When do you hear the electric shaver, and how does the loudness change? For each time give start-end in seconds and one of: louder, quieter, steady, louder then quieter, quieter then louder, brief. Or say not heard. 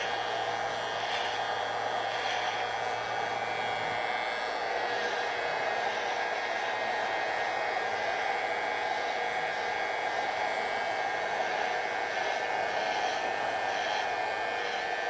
0.0-15.0 steady.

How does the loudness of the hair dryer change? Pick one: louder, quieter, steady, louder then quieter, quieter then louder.
steady.